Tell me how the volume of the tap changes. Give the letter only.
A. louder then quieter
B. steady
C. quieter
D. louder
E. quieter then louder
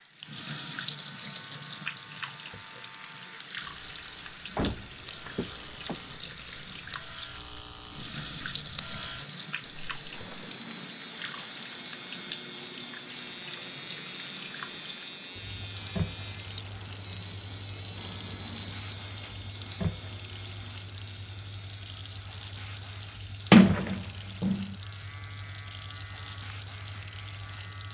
B.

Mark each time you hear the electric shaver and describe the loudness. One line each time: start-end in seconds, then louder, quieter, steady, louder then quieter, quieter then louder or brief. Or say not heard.
0.0-27.8 louder then quieter.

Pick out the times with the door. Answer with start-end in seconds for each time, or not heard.
4.5-6.0, 9.7-10.4, 23.5-24.6.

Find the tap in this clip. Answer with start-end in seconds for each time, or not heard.
0.0-27.8.